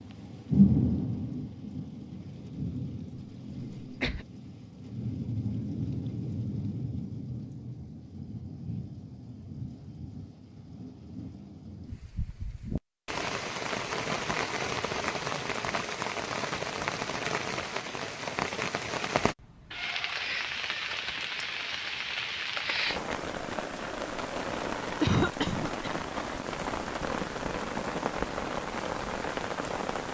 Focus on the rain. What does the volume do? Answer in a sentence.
The volume of the rain goes down, then up.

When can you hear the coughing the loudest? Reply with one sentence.
The loudest moment of the coughing is at 25 seconds.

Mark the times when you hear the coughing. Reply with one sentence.
The coughing can be heard from 3.8 to 4.2 s and from 25.0 to 26.1 s.